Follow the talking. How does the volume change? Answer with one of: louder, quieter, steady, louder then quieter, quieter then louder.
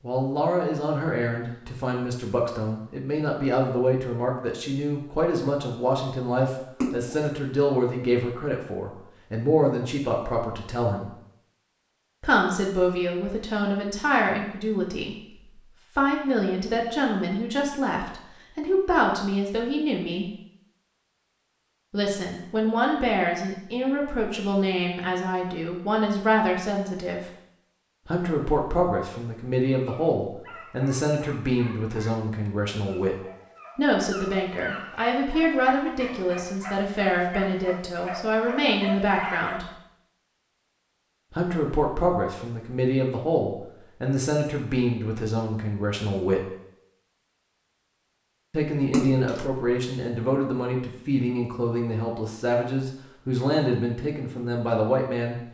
steady.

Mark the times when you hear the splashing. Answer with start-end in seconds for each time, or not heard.
6.8-7.3, 48.9-49.5.